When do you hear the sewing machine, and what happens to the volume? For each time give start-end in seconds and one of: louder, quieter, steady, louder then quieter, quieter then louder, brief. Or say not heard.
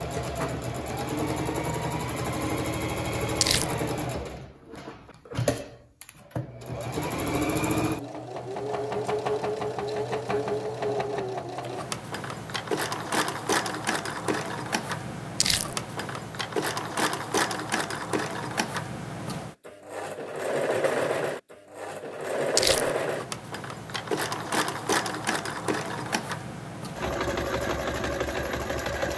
0.0-29.1 steady.